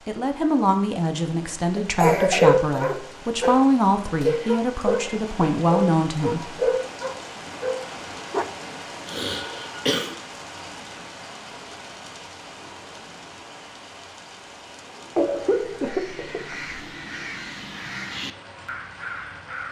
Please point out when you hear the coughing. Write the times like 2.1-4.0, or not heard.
1.8-3.6, 9.1-10.2, 15.2-16.6.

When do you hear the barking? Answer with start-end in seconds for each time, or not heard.
2.0-8.4.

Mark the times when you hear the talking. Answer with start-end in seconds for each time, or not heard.
0.1-6.7.